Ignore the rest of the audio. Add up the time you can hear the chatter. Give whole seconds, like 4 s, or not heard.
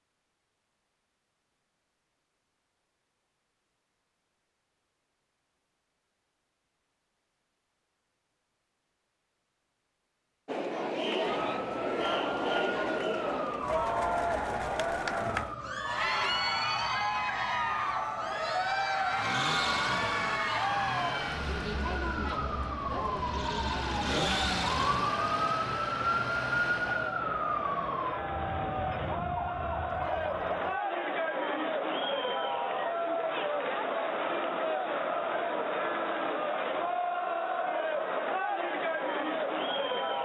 30 s.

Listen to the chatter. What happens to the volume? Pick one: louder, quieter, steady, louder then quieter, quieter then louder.
quieter then louder.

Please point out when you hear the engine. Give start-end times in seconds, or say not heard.
18.9-27.2.